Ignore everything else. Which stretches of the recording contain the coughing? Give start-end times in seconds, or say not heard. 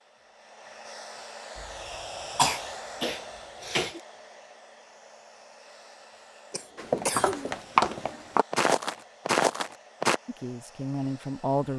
1.6-4.0, 6.5-7.5.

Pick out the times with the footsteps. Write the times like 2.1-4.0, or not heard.
6.8-10.2.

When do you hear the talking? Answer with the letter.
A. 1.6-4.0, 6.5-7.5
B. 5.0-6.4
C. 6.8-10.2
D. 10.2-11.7
D.